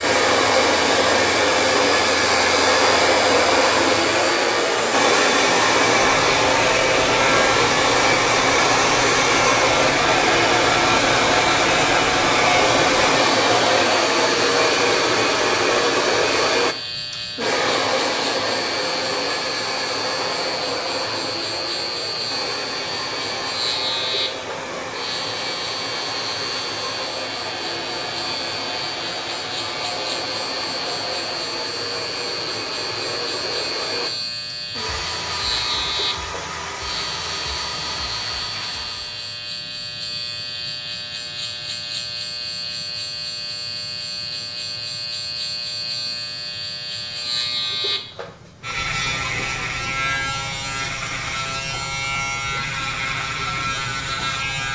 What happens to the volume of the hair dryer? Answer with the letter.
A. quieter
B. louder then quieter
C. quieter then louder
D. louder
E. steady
A.